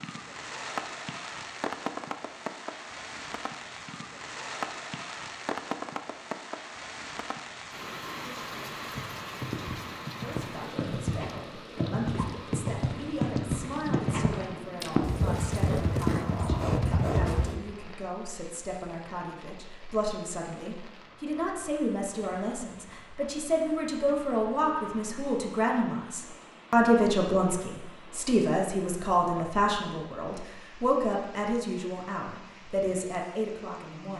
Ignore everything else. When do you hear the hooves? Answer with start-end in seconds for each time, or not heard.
8.8-17.6.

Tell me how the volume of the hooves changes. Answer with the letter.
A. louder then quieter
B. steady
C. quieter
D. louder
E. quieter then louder
D.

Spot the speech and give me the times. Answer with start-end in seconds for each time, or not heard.
10.2-34.1.